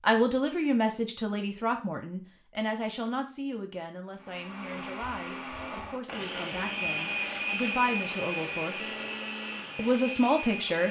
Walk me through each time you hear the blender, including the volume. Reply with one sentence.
You can hear the blender from 4.2 to 10.8 s, getting louder then quieter.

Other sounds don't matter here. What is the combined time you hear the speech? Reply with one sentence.
You can hear the speech for 10 seconds altogether.